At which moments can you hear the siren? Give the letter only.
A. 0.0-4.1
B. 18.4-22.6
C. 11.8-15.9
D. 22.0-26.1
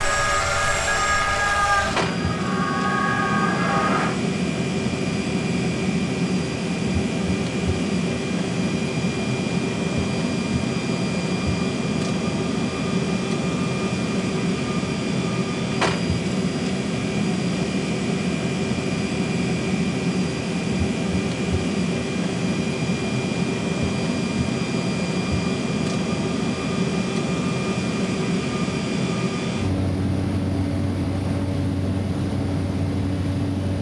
A.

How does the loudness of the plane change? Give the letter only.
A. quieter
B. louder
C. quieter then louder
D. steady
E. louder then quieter
D.